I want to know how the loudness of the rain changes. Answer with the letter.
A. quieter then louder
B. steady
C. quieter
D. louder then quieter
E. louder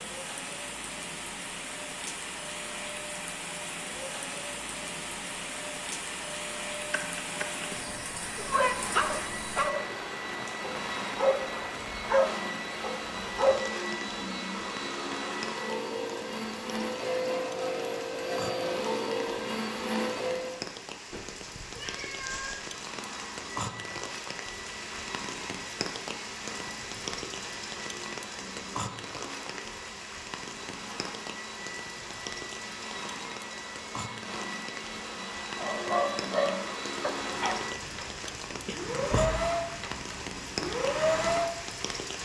B.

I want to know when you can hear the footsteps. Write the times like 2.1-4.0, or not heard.
not heard.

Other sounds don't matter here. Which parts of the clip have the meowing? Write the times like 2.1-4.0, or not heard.
6.9-8.8, 21.1-22.7, 38.6-39.4.